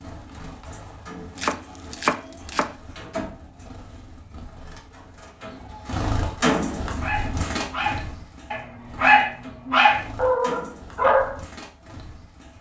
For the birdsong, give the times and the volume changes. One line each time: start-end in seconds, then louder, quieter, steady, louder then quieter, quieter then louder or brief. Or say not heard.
0.0-12.5 louder then quieter.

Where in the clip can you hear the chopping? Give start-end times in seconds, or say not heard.
1.4-2.8.